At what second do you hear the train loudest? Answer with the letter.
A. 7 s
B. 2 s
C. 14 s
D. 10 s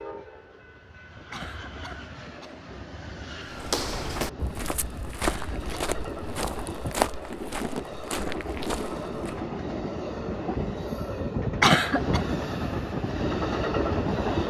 C.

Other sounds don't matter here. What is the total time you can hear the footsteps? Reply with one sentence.
The footsteps can be heard for 6 seconds in total.